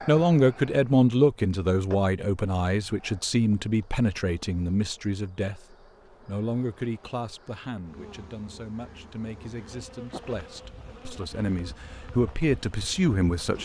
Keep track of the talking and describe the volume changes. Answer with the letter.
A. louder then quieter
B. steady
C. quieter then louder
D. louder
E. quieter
C.